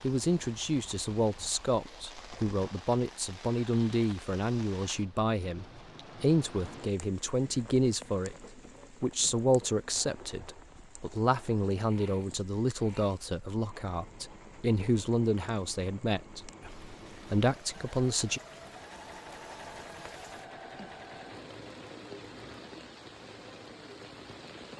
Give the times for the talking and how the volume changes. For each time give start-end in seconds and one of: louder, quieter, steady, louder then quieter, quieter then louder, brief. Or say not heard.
0.0-18.4 steady.